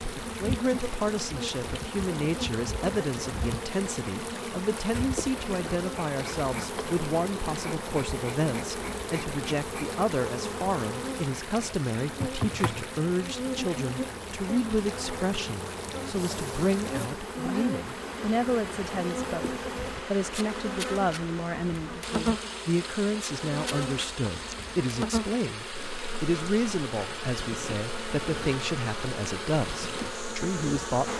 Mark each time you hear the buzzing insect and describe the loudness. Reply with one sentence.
You can hear the buzzing insect from 0.0 to 31.1 s, at a steady volume.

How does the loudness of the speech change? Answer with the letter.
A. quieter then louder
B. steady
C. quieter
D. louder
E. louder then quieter
B.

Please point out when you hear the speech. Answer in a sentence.
The speech can be heard from 0.2 to 31.1 s.